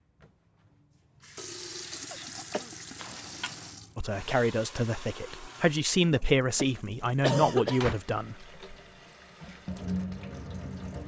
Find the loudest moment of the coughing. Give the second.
7 s.